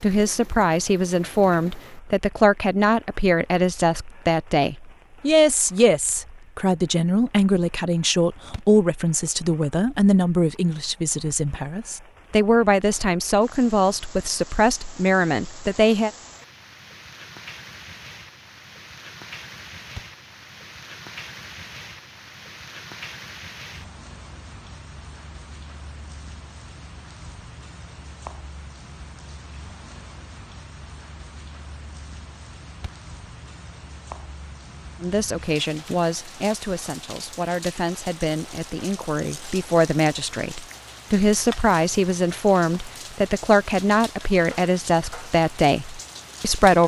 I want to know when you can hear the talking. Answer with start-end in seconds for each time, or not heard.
0.0-16.1, 35.0-46.8.